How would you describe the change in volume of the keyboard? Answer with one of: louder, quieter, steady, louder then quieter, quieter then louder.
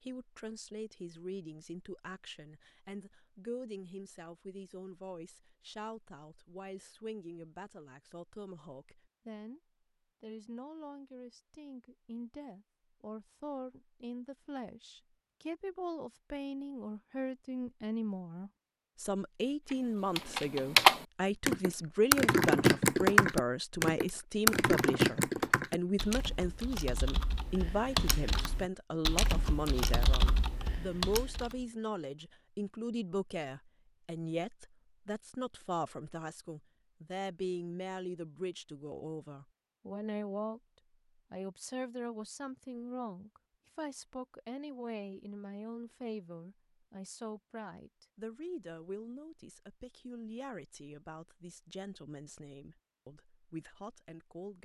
quieter.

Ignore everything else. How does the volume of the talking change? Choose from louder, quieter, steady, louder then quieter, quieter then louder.
louder then quieter.